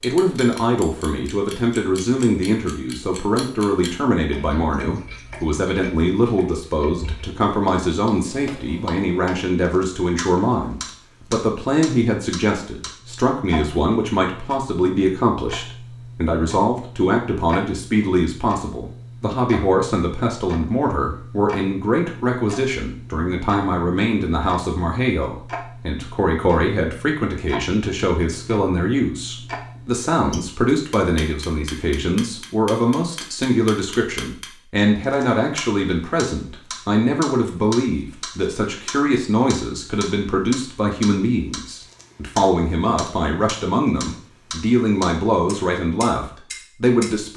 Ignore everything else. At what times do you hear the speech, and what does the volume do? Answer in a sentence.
You can hear the speech from 0.0 to 47.3 s, at a steady volume.